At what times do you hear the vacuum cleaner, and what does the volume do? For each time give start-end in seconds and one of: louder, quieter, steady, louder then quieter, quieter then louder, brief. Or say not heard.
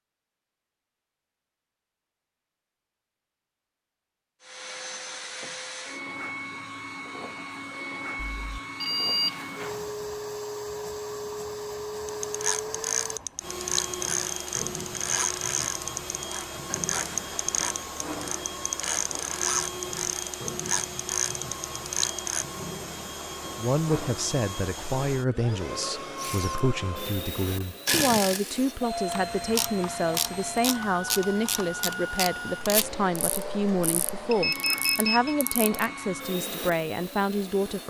4.4-37.8 steady.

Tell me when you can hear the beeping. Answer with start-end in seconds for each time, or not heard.
8.2-9.9, 34.3-35.4.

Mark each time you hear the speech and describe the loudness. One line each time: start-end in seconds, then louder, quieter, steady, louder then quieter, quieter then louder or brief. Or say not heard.
23.6-37.8 steady.